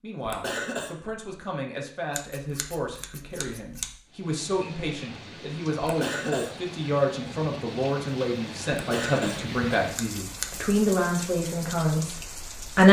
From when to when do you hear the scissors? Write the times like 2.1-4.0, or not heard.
2.1-4.0, 9.9-10.7.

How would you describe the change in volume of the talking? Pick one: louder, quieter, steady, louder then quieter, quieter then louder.
louder.